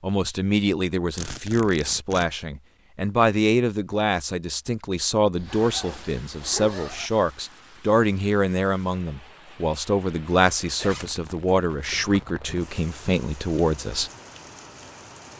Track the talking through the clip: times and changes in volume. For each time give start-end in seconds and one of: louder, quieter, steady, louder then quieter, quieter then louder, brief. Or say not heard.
0.0-14.1 steady.